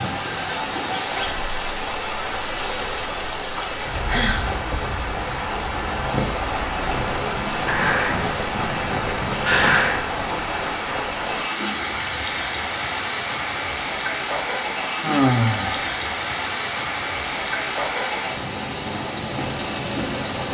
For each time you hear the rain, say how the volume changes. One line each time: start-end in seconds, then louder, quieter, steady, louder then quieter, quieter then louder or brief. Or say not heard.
0.0-20.4 steady.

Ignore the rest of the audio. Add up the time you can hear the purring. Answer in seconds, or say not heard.
4 s.